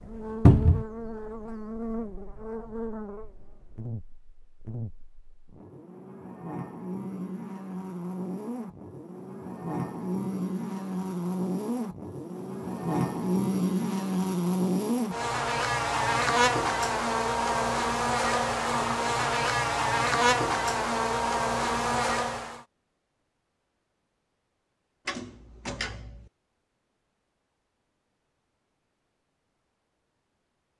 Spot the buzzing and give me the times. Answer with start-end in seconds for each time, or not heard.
0.0-22.6.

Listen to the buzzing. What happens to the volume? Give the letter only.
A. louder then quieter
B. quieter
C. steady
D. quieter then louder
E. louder
E.